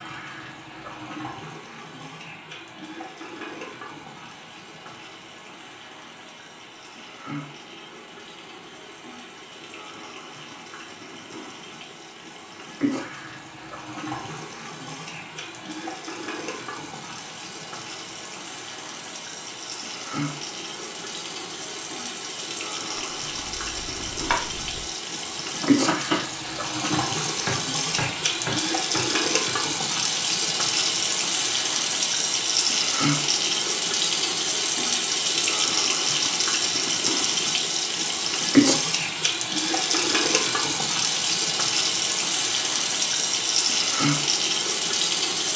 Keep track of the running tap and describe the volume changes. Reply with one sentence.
The volume of the running tap goes up.